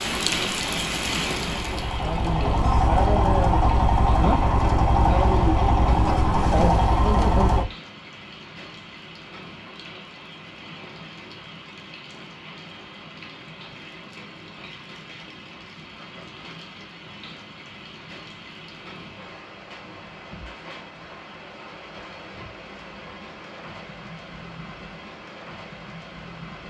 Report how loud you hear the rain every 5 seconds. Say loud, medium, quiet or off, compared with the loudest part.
loud, medium, medium, medium, medium, medium.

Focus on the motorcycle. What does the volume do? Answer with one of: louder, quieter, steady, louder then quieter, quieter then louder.
louder.